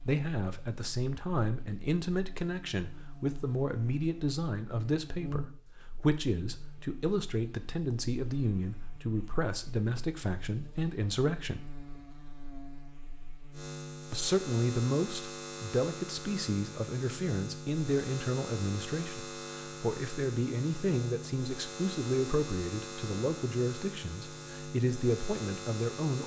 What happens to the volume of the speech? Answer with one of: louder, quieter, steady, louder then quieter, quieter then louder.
steady.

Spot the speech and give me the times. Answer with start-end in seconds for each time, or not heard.
0.0-11.7, 14.1-26.2.